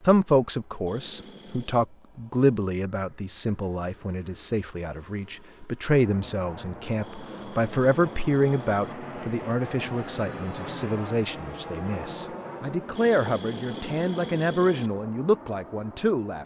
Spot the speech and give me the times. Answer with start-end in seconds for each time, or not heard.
0.0-16.4.